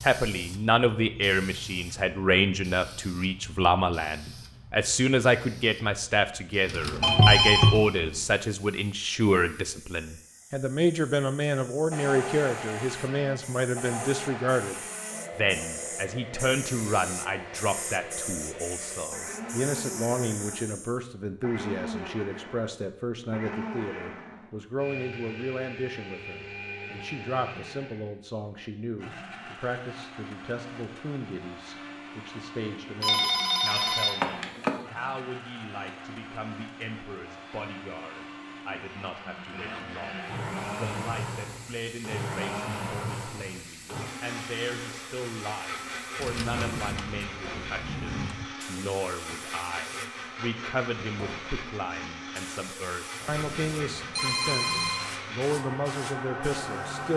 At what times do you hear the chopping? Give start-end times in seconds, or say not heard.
not heard.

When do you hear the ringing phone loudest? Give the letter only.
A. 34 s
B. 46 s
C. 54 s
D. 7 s
D.